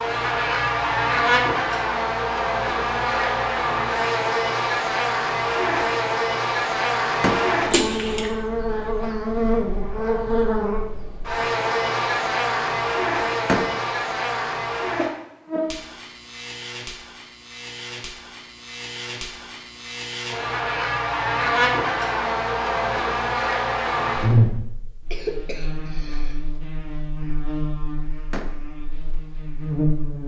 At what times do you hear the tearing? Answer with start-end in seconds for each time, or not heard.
not heard.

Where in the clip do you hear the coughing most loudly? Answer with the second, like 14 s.
8 s.